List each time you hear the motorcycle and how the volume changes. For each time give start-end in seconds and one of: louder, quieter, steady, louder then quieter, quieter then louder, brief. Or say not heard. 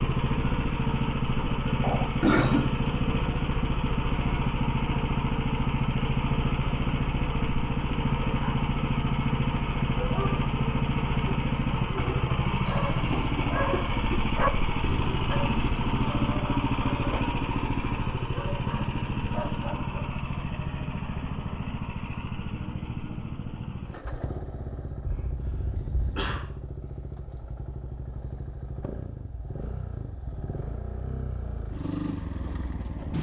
0.0-33.1 quieter.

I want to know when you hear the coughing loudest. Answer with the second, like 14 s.
2 s.